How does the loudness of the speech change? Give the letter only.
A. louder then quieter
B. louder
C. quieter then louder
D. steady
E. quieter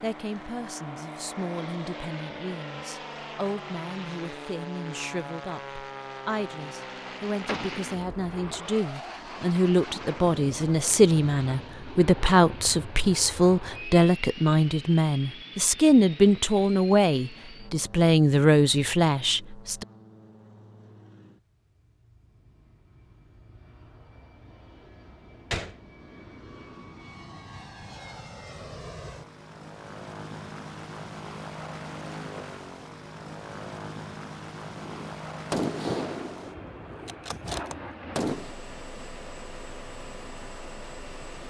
B.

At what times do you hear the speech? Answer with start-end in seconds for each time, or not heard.
0.0-19.9.